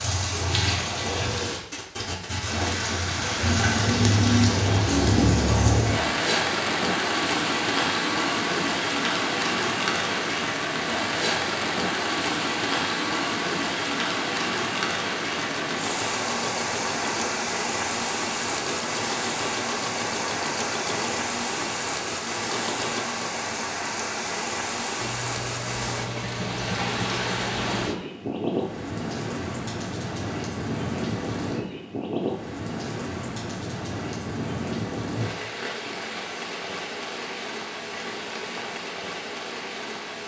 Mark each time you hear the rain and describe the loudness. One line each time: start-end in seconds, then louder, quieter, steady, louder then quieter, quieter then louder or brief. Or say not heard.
0.0-40.2 quieter.